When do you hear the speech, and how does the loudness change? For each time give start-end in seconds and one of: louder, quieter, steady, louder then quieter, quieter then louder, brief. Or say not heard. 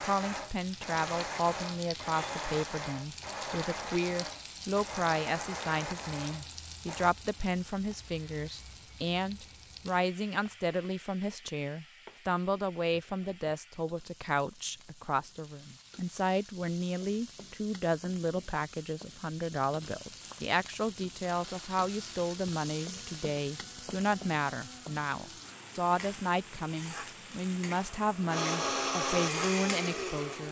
0.0-30.4 steady.